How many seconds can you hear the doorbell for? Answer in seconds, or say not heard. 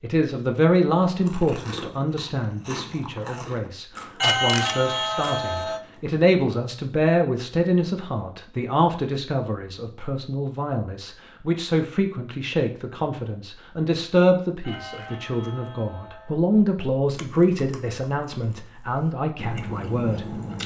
3 s.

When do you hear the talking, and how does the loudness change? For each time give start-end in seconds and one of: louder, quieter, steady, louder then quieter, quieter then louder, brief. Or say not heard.
0.0-20.4 steady.